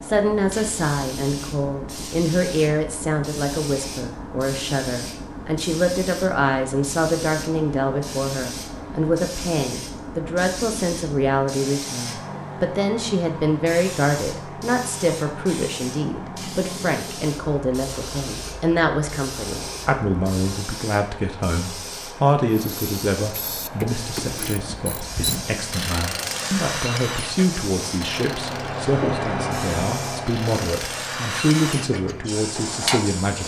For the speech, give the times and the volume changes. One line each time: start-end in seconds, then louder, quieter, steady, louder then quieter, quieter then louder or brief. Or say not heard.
0.0-33.4 steady.